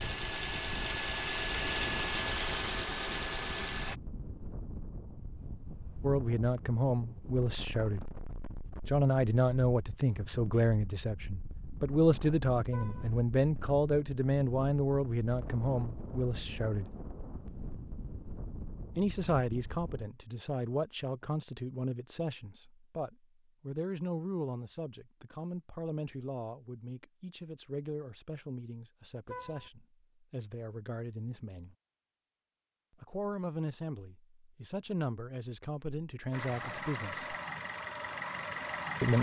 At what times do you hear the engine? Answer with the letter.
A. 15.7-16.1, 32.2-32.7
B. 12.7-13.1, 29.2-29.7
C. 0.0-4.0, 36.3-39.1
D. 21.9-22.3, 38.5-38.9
C.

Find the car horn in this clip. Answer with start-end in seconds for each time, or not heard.
12.7-13.1, 29.2-29.7.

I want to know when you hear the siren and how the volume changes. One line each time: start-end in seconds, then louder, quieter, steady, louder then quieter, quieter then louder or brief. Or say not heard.
not heard.